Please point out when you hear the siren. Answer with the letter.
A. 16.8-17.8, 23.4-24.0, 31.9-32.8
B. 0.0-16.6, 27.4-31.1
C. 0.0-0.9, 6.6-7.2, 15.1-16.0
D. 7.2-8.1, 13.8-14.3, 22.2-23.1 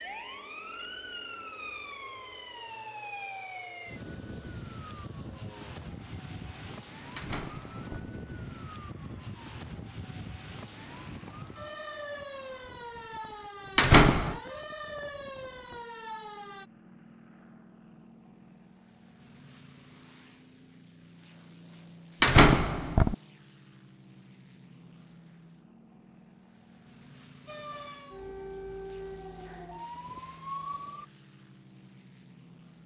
B.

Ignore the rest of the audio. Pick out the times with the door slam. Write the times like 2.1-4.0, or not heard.
7.2-8.1, 13.8-14.3, 22.2-23.1.